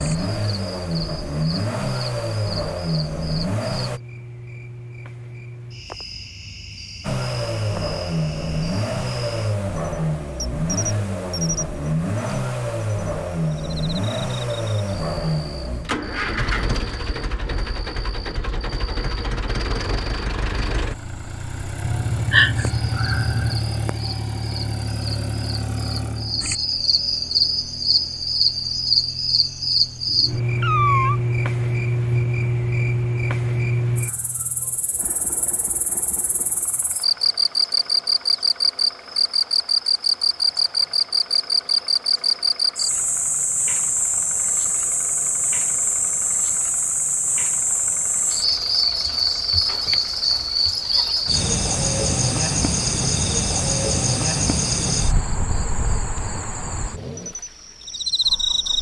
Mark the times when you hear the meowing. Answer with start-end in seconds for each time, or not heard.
21.8-23.6, 30.6-31.2.